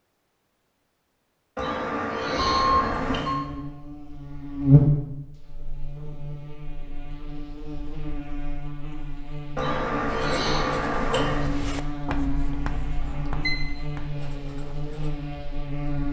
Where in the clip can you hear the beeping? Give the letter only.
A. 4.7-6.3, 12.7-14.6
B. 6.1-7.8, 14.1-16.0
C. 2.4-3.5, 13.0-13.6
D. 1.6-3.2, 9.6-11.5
C.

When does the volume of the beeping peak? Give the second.
3 s.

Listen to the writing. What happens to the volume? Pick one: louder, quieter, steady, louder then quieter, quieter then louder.
quieter.